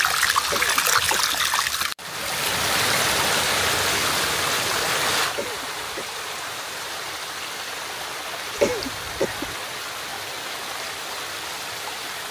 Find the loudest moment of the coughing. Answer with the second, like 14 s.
9 s.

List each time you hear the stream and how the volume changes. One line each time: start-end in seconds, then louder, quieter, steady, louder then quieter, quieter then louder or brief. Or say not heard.
0.0-12.2 quieter.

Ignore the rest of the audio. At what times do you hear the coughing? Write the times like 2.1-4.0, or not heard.
0.5-1.4, 5.3-6.0, 8.6-9.6.